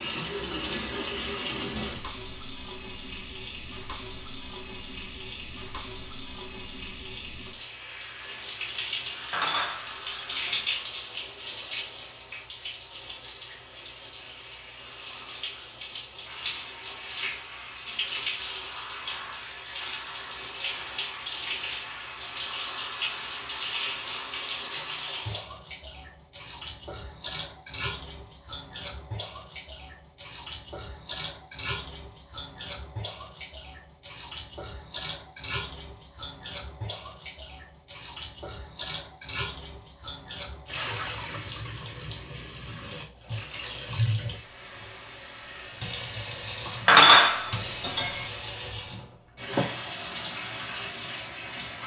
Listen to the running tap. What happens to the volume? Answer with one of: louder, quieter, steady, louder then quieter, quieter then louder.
steady.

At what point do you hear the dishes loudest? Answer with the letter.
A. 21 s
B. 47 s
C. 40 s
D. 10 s
B.